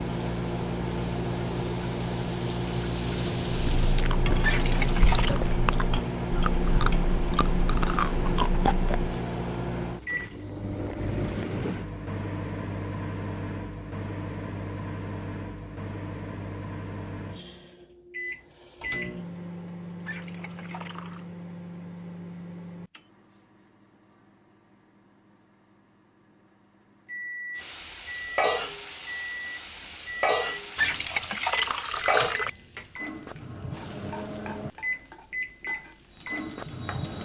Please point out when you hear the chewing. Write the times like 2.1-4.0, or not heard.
3.8-9.2.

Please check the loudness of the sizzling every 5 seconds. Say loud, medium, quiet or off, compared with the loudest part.
medium, medium, off, off, off, loud, loud, quiet.